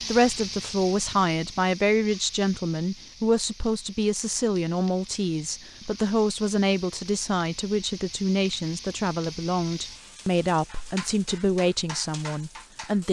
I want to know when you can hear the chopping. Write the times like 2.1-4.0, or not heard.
not heard.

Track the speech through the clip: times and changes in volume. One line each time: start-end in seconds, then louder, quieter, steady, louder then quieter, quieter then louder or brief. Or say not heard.
0.1-13.0 steady.